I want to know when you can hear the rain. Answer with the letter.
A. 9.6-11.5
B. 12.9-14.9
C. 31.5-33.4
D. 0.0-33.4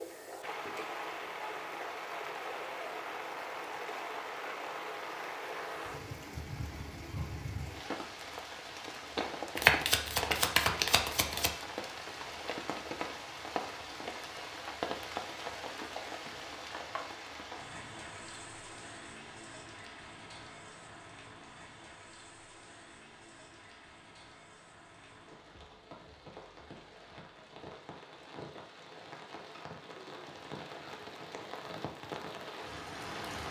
D.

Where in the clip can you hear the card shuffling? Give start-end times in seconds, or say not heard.
9.6-11.5.